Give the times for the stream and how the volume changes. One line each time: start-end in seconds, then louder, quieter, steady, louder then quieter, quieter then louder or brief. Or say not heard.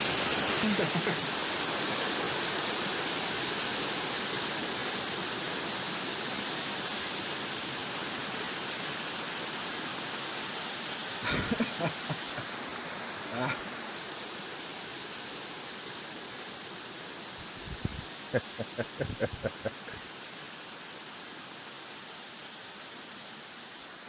0.0-24.0 quieter.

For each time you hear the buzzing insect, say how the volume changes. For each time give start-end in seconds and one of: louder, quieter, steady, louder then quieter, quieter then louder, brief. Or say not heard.
not heard.